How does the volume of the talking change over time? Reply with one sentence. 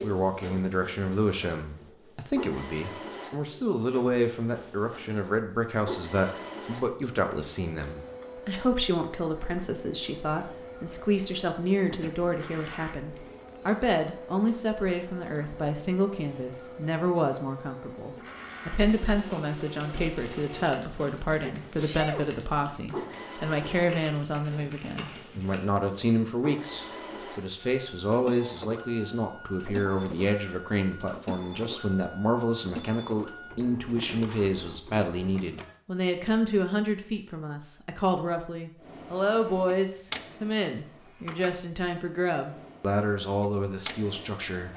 The volume of the talking stays about the same.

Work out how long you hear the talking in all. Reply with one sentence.
The talking can be heard for 45 seconds in total.